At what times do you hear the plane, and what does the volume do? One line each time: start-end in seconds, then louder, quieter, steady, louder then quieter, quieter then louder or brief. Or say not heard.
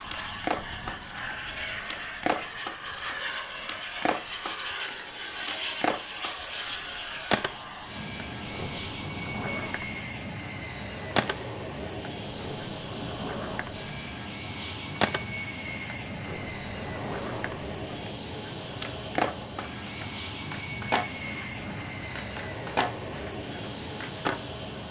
0.0-24.8 steady.